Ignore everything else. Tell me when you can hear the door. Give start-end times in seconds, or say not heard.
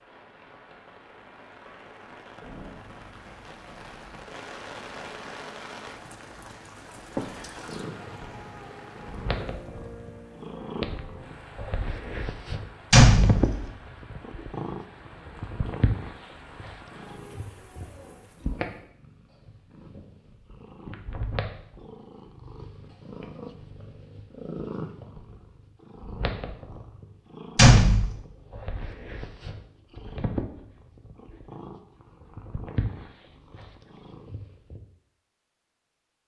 12.9-13.7, 27.6-28.1.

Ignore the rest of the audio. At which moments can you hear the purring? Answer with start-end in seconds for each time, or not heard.
7.7-34.8.